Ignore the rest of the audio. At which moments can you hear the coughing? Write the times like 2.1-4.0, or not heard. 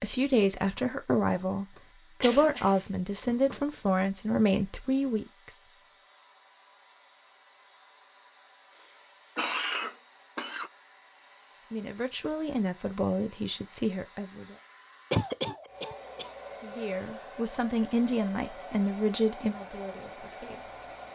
1.8-3.6, 8.7-10.7, 15.1-16.4.